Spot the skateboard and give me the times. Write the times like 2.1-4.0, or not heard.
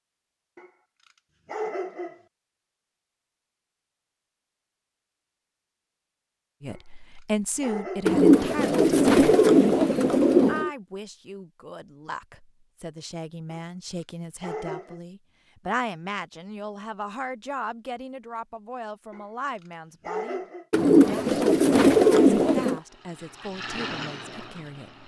not heard.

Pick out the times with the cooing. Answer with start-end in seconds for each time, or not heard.
8.1-10.7, 20.7-22.8.